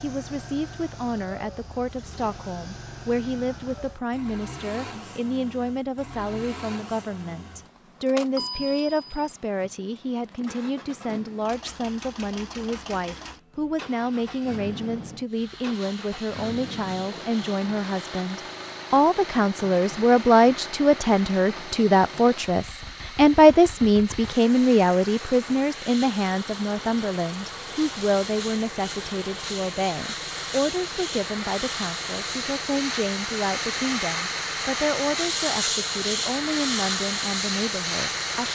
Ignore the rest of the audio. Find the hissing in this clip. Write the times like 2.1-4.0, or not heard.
15.2-38.5.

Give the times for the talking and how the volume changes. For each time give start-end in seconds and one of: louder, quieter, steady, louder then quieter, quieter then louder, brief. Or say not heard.
0.0-38.5 louder then quieter.